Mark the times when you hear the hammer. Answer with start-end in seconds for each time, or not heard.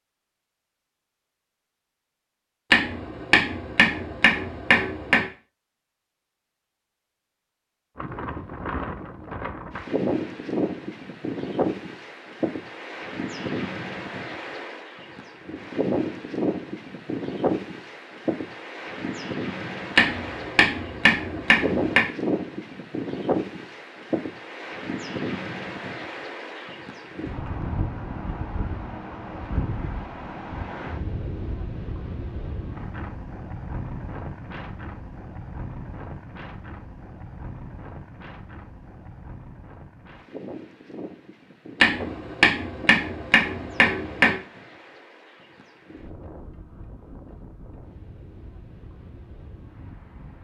2.7-5.2, 19.9-22.1, 41.8-44.4.